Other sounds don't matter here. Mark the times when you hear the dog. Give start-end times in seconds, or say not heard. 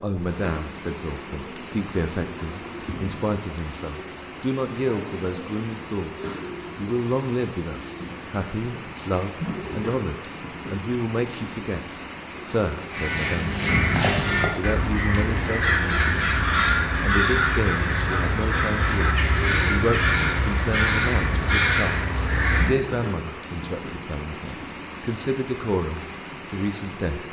not heard.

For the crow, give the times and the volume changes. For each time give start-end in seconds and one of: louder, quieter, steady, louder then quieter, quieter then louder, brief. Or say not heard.
12.9-22.7 steady.